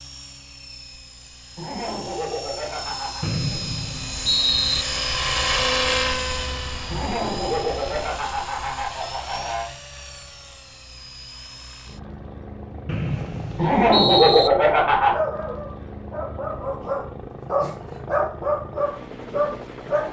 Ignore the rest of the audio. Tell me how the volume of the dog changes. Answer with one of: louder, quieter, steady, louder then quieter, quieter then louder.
louder.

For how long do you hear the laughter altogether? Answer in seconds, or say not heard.
6 s.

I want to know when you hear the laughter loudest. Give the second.
14 s.